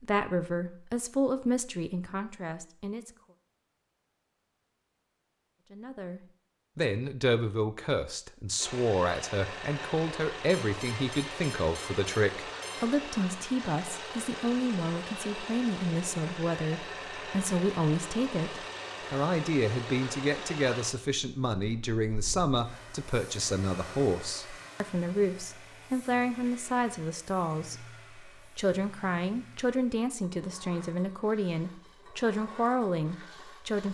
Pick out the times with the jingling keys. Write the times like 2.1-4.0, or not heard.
not heard.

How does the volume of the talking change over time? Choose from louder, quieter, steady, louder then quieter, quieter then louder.
steady.